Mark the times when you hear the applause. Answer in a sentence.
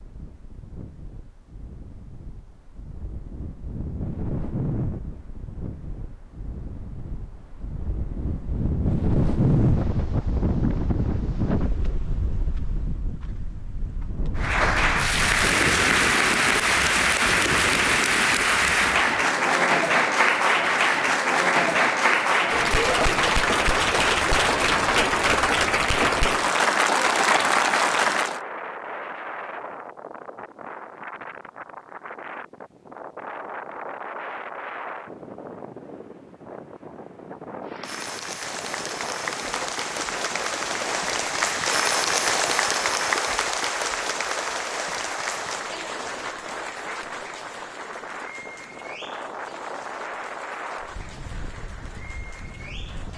You can hear the applause from 14.3 to 28.4 s and from 37.6 to 53.1 s.